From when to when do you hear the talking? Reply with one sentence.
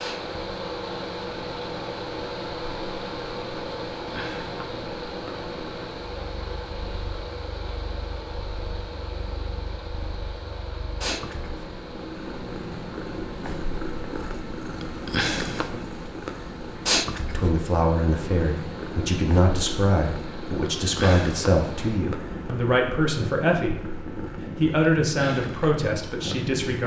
The talking can be heard from 17.2 to 26.8 s.